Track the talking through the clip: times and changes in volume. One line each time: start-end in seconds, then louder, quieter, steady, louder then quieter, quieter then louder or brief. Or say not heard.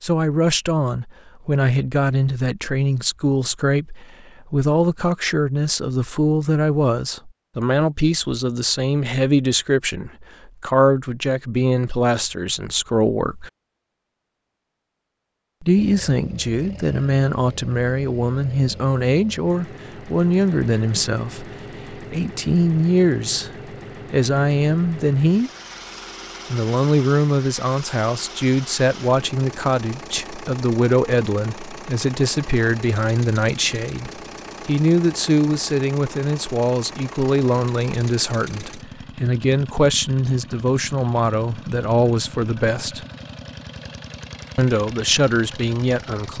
0.0-13.5 steady
15.6-23.5 steady
24.1-25.5 brief
26.5-43.0 steady
44.5-46.3 brief.